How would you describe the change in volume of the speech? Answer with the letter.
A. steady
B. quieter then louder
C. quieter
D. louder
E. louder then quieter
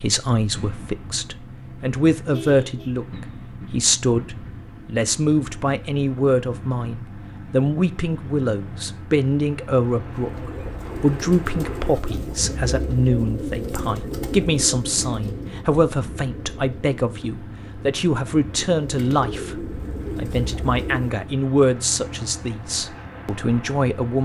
A.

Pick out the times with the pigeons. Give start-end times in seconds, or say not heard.
10.2-21.3.